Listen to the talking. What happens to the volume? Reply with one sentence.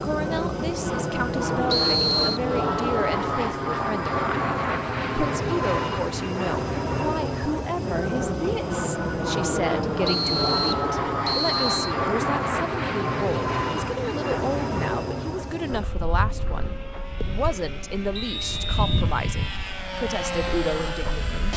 The loudness of the talking stays about the same.